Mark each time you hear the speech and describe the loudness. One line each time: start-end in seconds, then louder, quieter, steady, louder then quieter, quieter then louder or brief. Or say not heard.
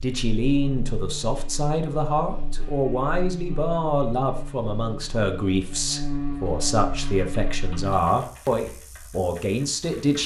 0.0-10.2 steady.